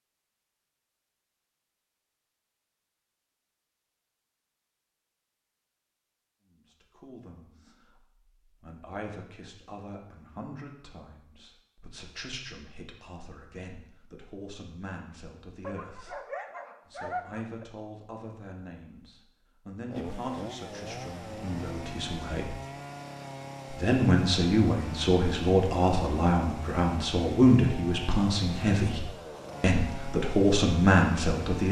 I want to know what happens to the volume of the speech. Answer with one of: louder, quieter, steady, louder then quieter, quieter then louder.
louder.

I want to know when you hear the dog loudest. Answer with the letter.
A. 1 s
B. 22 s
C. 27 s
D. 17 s
D.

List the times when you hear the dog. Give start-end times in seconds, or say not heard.
15.6-17.6.